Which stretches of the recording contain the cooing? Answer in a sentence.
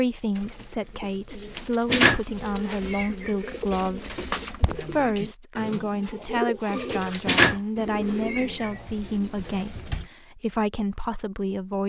The cooing can be heard from 0.3 to 10.1 s.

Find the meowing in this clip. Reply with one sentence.
The meowing can be heard from 1.9 to 3.3 s and from 7.2 to 8.7 s.